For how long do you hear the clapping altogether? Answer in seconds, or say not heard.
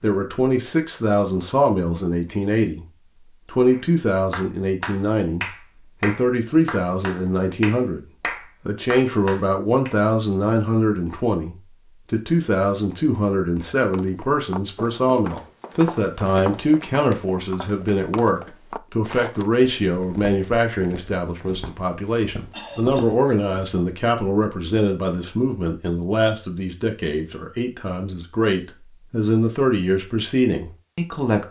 6 s.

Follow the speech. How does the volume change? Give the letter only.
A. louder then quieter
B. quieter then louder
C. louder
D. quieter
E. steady
E.